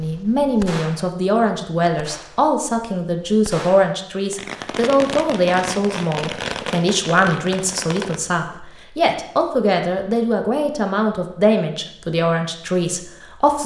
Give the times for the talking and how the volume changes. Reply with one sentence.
The talking can be heard from 0.0 to 13.6 s, at a steady volume.